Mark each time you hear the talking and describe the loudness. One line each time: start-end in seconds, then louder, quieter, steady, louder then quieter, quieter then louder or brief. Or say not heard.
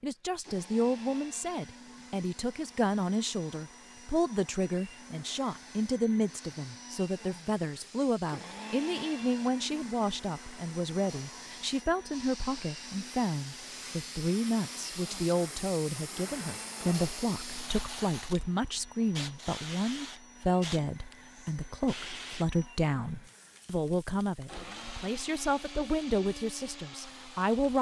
0.0-27.7 steady.